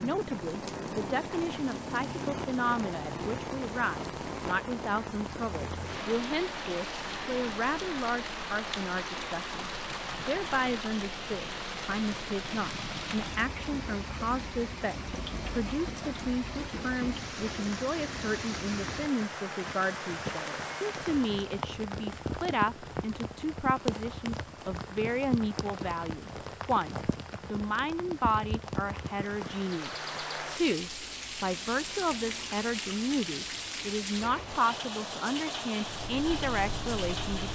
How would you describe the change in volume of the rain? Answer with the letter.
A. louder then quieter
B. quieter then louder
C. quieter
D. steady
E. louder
D.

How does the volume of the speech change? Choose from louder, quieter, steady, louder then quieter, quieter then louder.
steady.